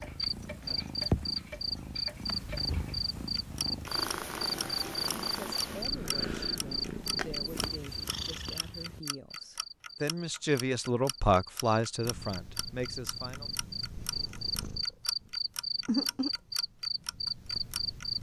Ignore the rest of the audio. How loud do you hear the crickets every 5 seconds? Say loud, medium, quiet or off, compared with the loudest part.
loud, loud, medium, loud.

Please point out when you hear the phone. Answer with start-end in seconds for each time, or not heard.
not heard.